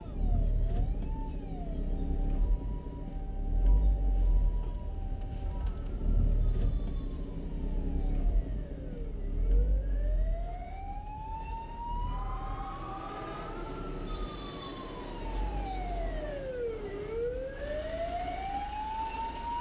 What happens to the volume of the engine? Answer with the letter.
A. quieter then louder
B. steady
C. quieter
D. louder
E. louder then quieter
C.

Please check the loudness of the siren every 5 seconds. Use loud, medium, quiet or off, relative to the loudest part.
quiet, quiet, medium, loud.